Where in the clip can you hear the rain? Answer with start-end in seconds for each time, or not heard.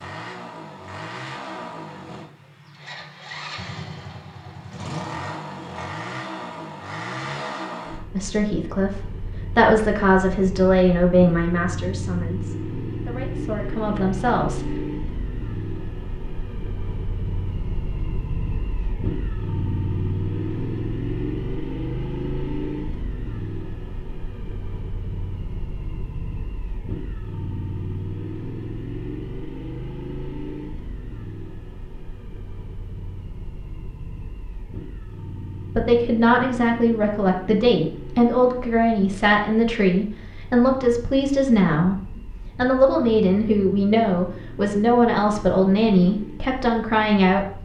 not heard.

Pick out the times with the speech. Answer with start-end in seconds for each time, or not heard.
8.2-14.7, 35.8-47.5.